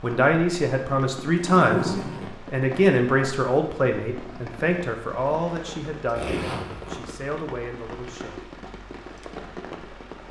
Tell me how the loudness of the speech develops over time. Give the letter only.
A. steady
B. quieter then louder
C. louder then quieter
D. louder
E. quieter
E.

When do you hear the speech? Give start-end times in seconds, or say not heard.
0.0-8.5.